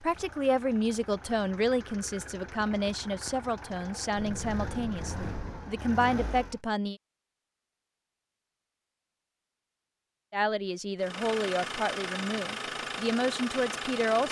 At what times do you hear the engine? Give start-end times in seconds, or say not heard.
0.0-6.6, 10.9-14.2.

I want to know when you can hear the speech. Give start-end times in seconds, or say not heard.
0.0-7.0, 10.3-14.2.